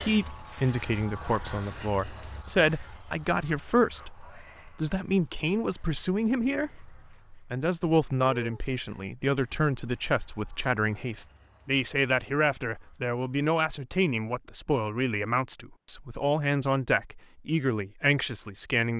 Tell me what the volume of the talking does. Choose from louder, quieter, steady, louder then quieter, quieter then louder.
steady.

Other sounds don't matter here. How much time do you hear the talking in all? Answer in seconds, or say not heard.
19 s.